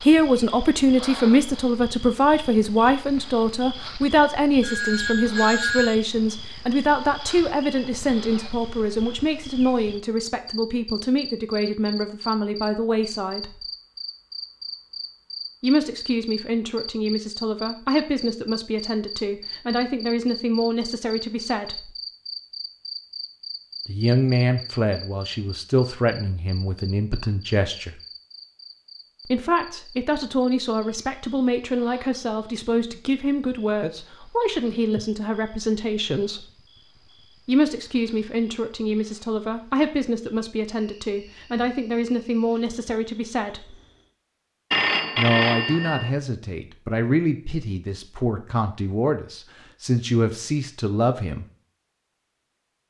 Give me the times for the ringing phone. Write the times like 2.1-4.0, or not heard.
4.6-6.0, 44.7-46.1.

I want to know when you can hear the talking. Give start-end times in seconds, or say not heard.
0.1-13.7, 15.6-21.9, 23.9-28.0, 29.2-36.5, 37.5-43.8, 45.1-51.5.